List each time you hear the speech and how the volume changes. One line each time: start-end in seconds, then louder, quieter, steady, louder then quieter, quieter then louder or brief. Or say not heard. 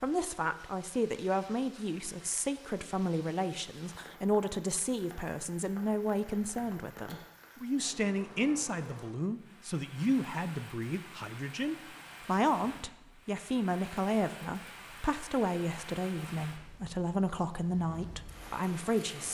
0.0-19.2 steady.